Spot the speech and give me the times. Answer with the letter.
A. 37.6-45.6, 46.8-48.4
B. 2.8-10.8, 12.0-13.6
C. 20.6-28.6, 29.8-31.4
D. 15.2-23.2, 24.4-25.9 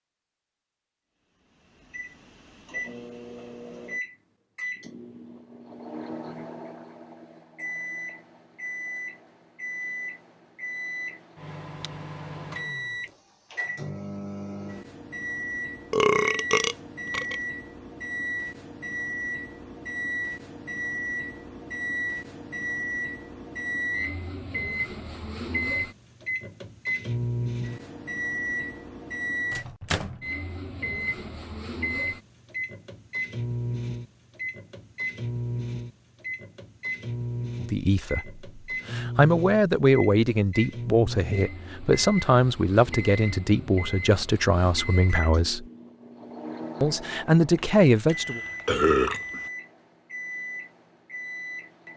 A.